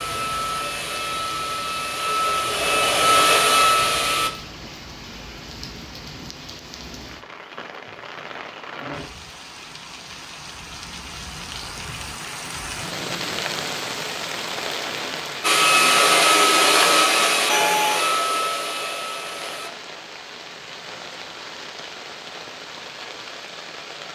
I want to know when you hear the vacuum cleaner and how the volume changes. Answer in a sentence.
You can hear the vacuum cleaner from 0.0 to 4.3 s, getting louder; and from 15.4 to 19.7 s, getting quieter.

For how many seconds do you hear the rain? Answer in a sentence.
The rain can be heard for 24 seconds in total.